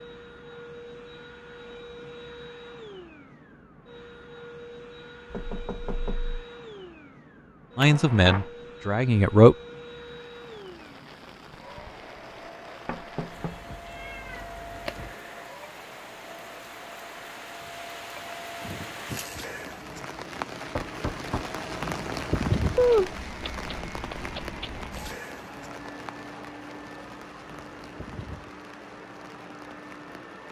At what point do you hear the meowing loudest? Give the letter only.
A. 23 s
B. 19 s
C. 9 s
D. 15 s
A.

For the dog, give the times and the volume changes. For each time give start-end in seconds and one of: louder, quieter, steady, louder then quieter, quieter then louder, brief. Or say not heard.
not heard.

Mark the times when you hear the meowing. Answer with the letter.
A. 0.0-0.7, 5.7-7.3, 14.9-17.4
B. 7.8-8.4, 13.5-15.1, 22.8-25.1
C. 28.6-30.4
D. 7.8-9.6
B.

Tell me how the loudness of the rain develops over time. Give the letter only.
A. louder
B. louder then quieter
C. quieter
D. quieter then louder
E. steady
B.